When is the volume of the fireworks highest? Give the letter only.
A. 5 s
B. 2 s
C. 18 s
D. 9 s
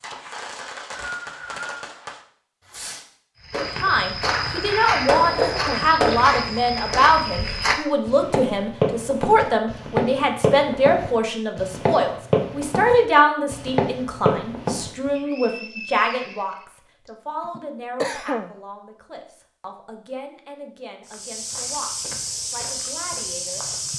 A.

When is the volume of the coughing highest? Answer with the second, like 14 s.
18 s.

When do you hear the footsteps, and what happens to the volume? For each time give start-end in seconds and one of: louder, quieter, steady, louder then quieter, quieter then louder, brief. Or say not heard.
3.5-15.1 steady
21.1-23.9 brief.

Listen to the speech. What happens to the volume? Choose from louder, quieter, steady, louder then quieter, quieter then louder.
quieter.